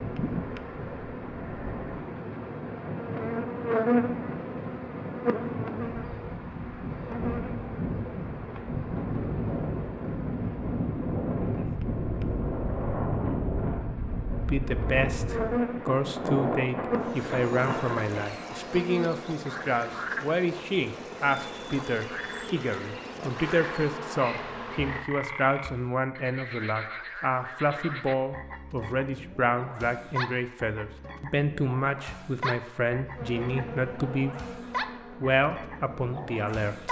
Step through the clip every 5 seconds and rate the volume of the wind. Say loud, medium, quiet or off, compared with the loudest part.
medium, loud, loud, loud, off, off, off, off.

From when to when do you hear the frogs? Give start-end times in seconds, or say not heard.
17.0-36.8.